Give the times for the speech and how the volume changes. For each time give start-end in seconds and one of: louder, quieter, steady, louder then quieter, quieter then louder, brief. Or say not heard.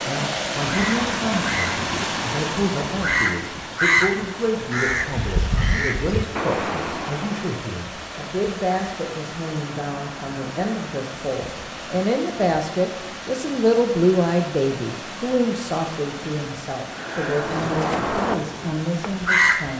0.1-19.7 louder then quieter.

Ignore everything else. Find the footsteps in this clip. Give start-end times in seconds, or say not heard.
not heard.